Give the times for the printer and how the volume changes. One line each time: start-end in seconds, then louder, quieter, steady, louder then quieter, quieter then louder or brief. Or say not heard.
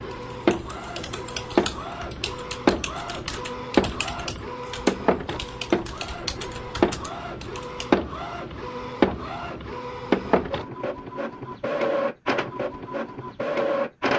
0.0-14.1 steady.